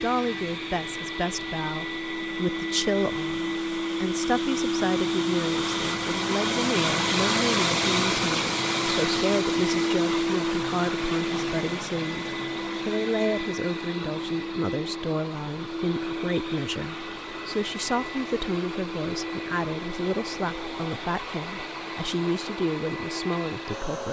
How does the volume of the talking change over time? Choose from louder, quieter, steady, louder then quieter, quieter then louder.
steady.